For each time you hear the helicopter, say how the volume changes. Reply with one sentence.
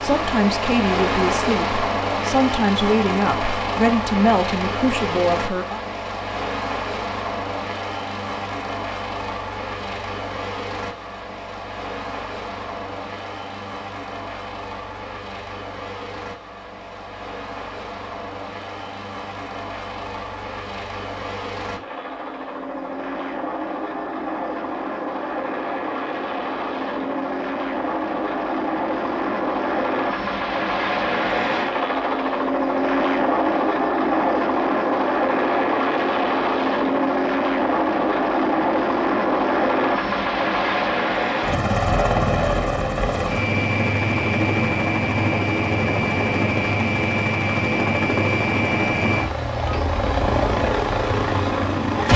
You can hear the helicopter from 0.0 to 52.1 s, getting quieter then louder.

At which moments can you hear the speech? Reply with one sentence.
The speech can be heard from 0.0 to 5.8 s.